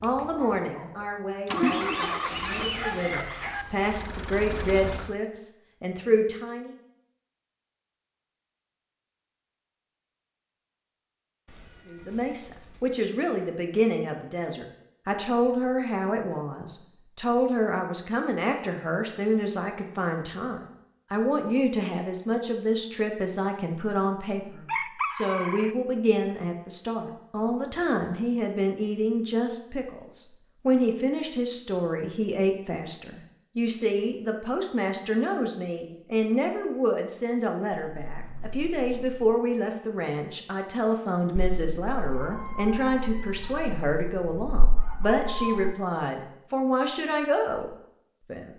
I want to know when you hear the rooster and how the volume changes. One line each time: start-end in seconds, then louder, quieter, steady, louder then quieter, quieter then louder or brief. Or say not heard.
1.6-3.6 brief
24.6-25.8 brief
41.4-45.8 quieter then louder.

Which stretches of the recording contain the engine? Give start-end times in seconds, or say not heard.
0.0-5.2.